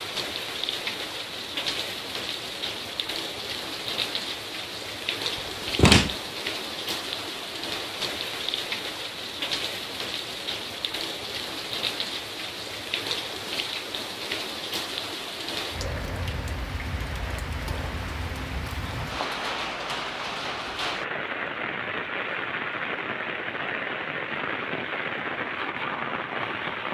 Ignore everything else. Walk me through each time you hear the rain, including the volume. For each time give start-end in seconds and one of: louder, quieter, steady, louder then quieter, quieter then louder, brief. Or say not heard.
0.0-26.8 steady.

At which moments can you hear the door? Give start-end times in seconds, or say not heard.
5.8-6.2.